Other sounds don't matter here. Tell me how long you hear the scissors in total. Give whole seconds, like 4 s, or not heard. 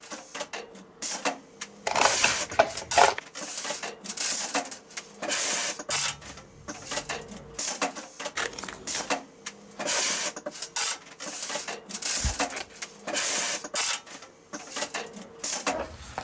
3 s.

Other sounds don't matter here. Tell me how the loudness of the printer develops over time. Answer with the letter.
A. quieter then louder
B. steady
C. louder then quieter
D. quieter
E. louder
B.